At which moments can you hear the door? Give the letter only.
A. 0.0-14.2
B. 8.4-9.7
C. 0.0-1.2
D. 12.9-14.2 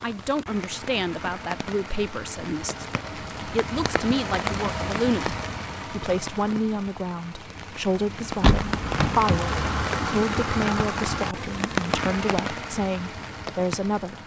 B.